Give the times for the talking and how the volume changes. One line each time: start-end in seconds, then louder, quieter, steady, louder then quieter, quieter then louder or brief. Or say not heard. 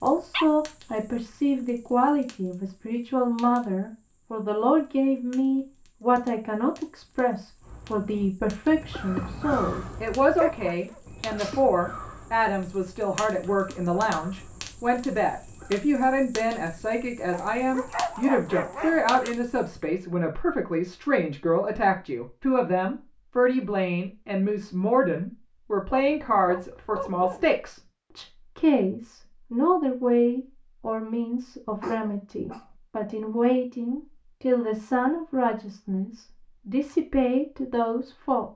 0.0-38.5 steady.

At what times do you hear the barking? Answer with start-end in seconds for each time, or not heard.
0.3-0.9, 10.4-11.6, 17.3-19.4, 25.9-27.4, 31.8-32.7.